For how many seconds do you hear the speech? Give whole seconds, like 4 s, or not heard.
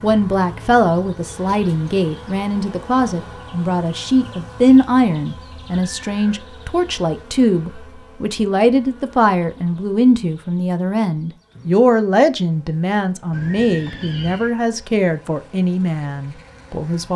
17 s.